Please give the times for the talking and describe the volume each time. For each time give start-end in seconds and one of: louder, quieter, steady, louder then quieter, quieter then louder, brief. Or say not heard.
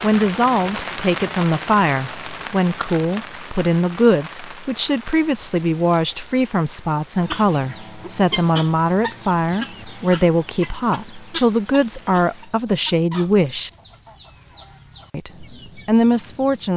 0.0-13.7 steady
15.1-16.7 brief.